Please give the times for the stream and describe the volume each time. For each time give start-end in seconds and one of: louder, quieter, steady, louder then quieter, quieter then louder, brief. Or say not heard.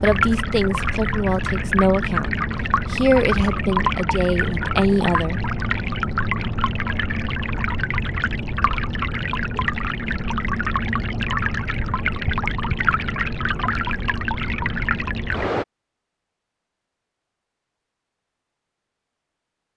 0.0-15.7 steady.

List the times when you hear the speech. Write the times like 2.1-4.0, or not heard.
0.0-5.5.